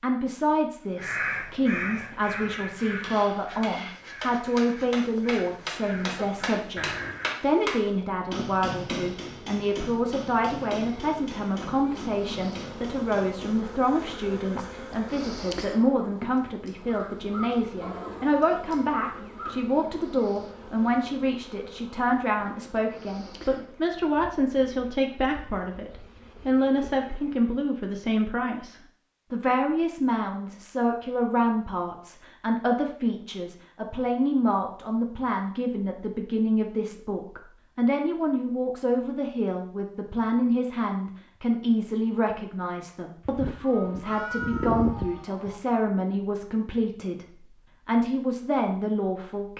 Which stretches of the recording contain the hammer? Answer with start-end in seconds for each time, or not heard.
2.8-13.7.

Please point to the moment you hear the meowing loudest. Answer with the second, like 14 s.
45 s.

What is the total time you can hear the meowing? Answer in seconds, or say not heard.
2 s.